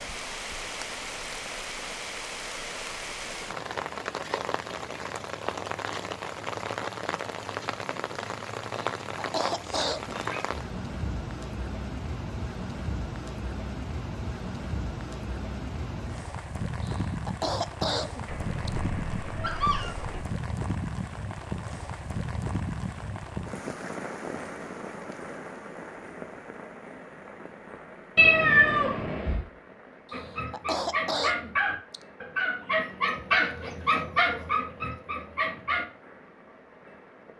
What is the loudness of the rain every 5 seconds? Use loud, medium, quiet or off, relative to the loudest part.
loud, loud, loud, loud, loud, medium, quiet, quiet.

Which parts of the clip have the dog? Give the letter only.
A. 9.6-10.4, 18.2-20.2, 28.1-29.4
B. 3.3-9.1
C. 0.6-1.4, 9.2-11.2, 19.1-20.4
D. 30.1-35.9
D.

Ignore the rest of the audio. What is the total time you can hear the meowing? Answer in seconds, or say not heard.
4 s.